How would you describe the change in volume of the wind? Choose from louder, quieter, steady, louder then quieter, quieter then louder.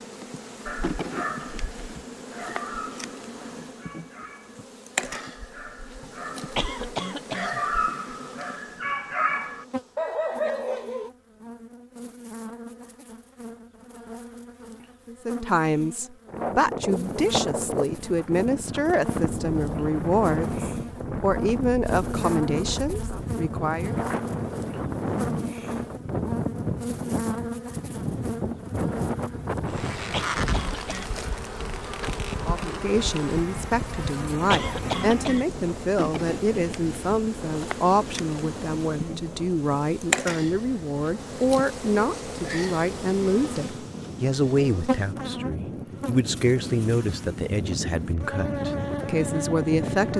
quieter then louder.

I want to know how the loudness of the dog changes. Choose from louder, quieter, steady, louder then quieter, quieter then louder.
quieter then louder.